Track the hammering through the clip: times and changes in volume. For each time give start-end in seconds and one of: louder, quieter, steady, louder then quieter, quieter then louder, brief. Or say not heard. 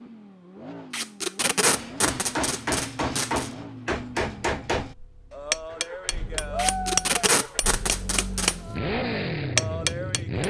1.7-10.4 steady.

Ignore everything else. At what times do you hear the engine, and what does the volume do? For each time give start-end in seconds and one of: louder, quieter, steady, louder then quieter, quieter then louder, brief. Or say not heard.
0.0-10.4 quieter then louder.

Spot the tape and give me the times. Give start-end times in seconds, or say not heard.
0.9-3.5, 6.5-8.6.